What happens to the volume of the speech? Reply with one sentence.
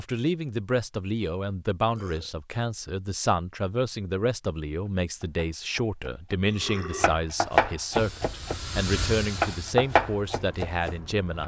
The volume of the speech stays about the same.